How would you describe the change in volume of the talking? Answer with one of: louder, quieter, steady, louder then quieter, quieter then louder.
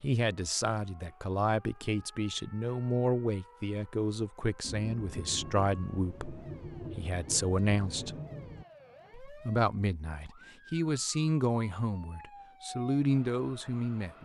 steady.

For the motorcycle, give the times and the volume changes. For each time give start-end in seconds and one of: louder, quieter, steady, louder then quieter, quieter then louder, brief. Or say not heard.
not heard.